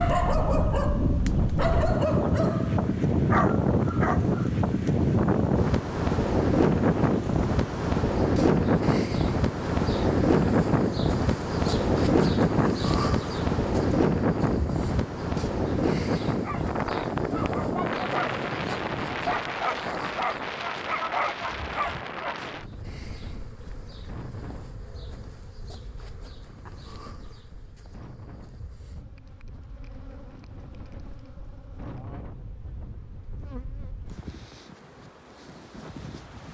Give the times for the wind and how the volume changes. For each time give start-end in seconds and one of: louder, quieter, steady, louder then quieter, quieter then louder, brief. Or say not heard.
0.0-36.4 quieter.